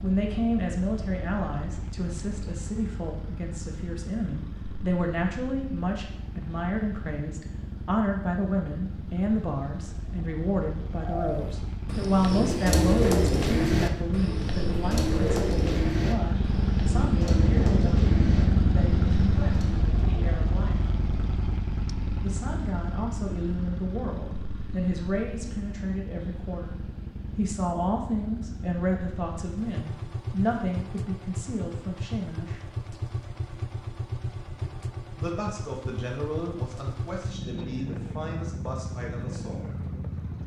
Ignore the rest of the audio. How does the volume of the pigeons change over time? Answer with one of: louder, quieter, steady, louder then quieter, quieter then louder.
quieter.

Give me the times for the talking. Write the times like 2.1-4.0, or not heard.
0.0-20.8, 22.2-32.6, 35.1-39.6.